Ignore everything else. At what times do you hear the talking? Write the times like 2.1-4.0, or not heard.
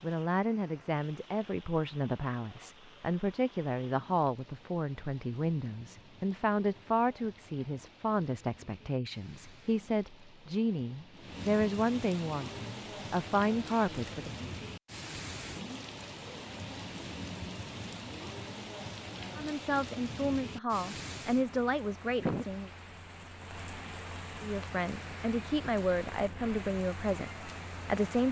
0.0-14.3, 19.4-22.7, 24.4-28.2.